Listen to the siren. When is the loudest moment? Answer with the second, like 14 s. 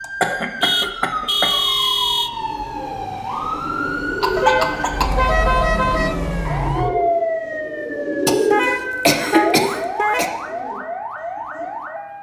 7 s.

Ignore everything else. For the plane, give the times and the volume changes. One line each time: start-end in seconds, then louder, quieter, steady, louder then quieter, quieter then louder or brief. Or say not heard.
not heard.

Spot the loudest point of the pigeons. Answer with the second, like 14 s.
8 s.